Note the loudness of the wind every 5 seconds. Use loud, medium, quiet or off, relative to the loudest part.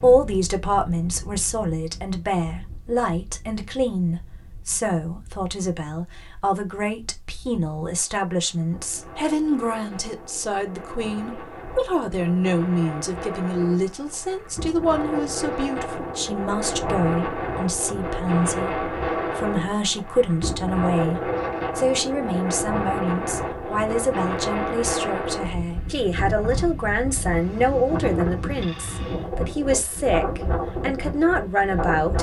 quiet, quiet, medium, loud, loud, loud, loud.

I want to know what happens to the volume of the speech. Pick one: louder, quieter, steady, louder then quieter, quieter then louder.
steady.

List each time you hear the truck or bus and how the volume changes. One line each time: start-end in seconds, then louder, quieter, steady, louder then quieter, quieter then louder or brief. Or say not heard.
not heard.